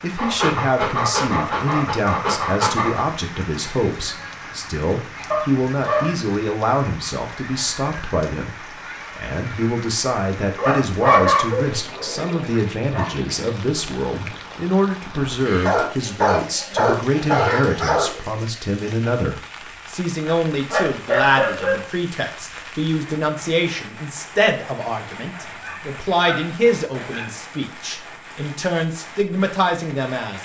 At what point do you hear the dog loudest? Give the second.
11 s.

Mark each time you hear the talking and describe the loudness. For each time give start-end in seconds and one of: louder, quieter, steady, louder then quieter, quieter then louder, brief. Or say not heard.
0.0-30.3 steady.